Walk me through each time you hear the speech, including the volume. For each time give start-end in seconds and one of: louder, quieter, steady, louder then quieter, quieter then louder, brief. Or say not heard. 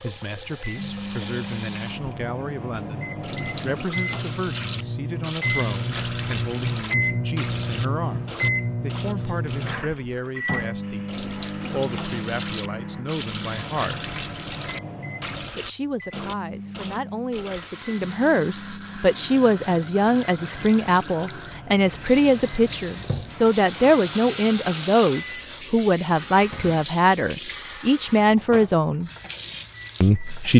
0.0-14.1 steady
15.5-29.1 louder
30.0-30.5 brief.